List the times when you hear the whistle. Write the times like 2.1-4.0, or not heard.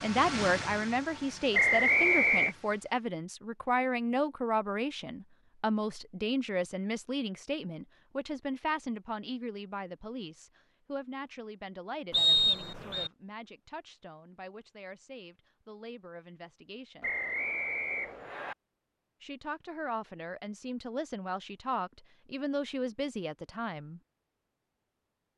1.5-2.5, 12.1-13.1, 17.0-18.6.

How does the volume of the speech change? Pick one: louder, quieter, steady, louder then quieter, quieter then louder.
quieter then louder.